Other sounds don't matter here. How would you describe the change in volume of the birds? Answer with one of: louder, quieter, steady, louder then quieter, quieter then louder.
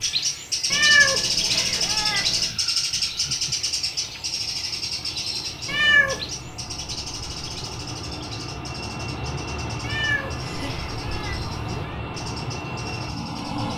quieter.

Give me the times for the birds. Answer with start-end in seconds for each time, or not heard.
0.0-13.7.